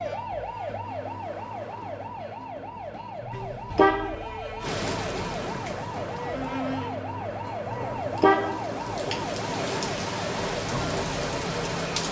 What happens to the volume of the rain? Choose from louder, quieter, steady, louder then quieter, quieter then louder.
quieter then louder.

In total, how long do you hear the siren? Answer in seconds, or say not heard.
12 s.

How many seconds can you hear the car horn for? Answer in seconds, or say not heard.
2 s.